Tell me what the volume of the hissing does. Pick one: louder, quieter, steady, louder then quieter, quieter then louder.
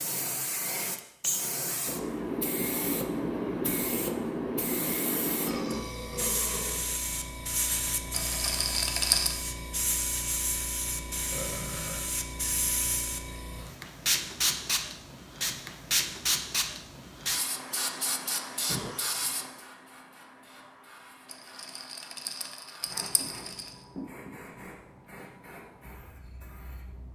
quieter.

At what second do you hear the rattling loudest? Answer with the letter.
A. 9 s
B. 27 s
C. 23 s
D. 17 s
A.